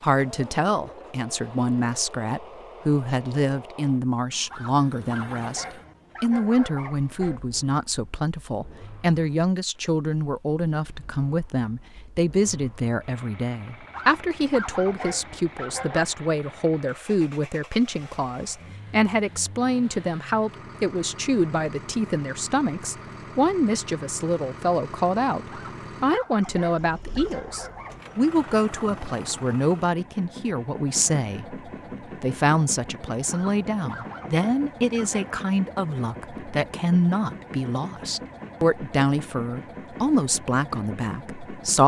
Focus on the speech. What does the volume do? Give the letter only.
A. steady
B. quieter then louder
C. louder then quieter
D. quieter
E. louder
A.